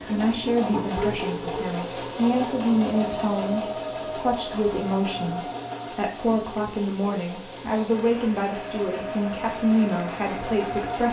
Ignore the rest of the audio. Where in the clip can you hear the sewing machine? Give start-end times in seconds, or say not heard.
0.0-11.0.